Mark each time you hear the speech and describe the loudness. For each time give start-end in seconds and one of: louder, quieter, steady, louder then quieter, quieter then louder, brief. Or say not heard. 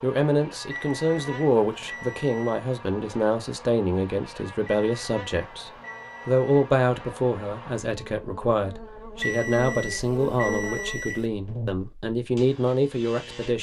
0.0-13.5 steady.